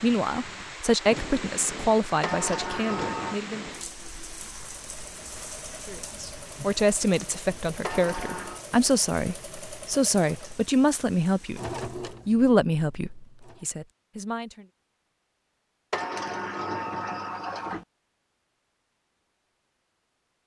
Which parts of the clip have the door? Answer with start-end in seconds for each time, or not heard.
2.2-3.4, 7.8-8.7, 15.9-17.9.